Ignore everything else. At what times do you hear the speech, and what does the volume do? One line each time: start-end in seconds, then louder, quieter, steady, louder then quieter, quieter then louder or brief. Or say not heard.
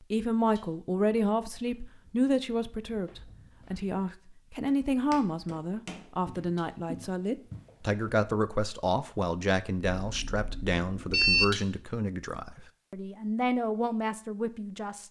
0.1-15.0 steady.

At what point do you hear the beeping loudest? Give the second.
11 s.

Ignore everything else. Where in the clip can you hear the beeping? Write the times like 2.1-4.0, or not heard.
9.9-11.4.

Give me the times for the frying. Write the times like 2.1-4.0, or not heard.
not heard.